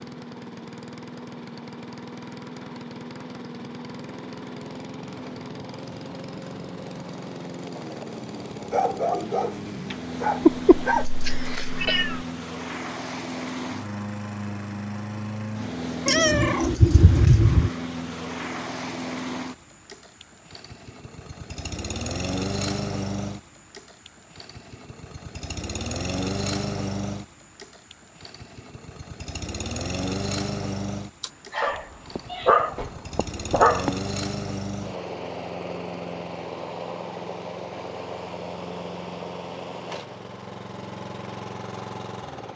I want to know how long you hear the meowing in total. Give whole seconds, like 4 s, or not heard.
5 s.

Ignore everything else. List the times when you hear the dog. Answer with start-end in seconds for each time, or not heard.
8.6-11.1, 31.6-33.9.